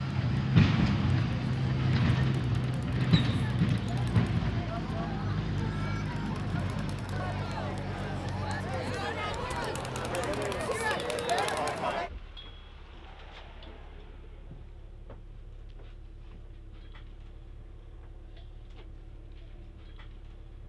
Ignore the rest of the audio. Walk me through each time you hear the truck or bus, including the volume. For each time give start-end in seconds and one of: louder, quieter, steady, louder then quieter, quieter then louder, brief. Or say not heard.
0.0-20.6 quieter.